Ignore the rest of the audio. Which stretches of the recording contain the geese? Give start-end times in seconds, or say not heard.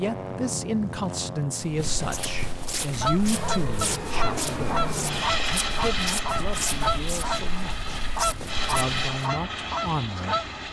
3.0-10.5.